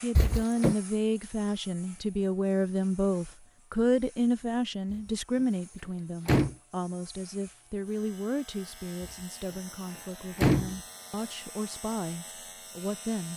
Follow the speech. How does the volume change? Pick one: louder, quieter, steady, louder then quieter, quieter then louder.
quieter.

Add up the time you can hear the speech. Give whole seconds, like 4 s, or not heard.
13 s.